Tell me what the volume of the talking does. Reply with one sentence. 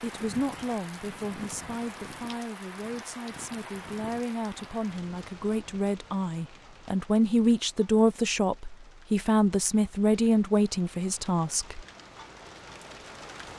The loudness of the talking goes up.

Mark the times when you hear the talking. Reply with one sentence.
You can hear the talking from 0.0 to 11.8 s.